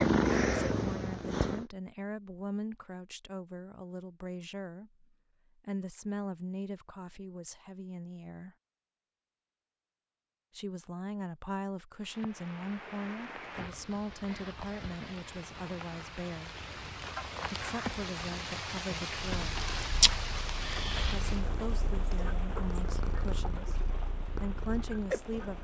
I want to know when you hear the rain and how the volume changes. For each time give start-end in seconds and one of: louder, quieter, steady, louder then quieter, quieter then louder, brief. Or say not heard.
12.0-25.5 louder then quieter.